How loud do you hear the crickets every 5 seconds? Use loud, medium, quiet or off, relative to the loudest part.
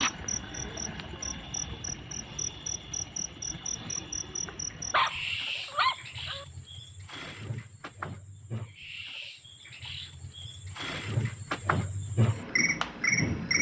medium, medium, loud.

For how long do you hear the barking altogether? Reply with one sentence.
The barking can be heard for 2 seconds in total.